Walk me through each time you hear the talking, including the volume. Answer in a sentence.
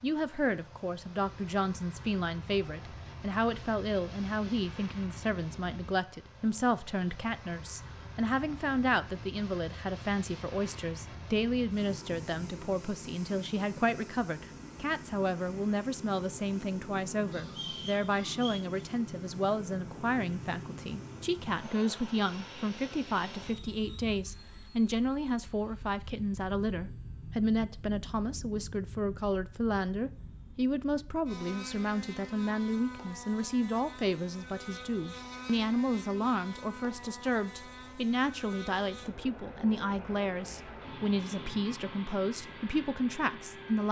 You can hear the talking from 0.0 to 43.8 s, at a steady volume.